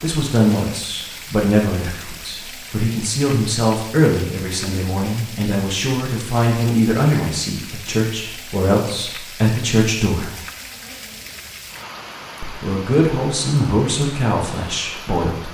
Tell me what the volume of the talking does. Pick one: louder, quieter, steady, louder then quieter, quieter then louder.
steady.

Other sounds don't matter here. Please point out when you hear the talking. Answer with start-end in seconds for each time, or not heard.
0.0-10.3, 12.4-15.5.